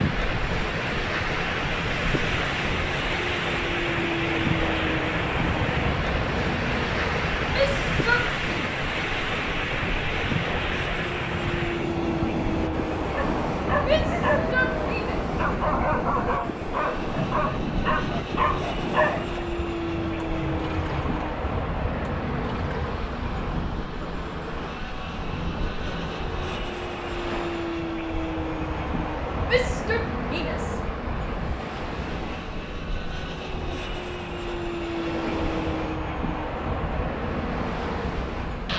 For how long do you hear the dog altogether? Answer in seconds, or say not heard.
6 s.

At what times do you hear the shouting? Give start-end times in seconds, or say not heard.
7.5-8.8, 13.8-15.2, 29.4-30.8.